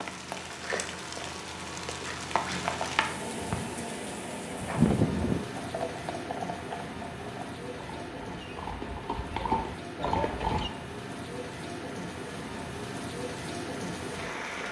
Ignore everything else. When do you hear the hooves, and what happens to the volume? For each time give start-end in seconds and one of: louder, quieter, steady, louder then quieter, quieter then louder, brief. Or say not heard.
4.6-10.7 quieter then louder.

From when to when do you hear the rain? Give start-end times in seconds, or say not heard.
0.0-14.6.